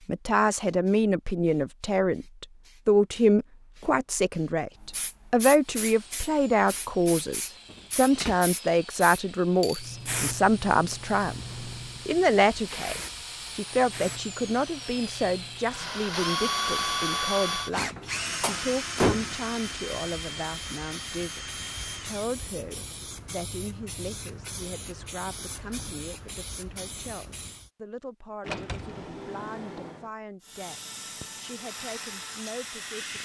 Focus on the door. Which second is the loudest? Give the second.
19 s.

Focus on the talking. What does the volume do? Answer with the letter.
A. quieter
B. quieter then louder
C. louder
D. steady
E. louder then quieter
A.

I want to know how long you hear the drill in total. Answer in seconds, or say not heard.
17 s.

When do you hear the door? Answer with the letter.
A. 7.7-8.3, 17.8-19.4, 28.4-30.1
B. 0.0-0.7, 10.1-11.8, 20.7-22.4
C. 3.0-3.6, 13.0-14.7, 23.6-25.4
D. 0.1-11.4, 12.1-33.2
A.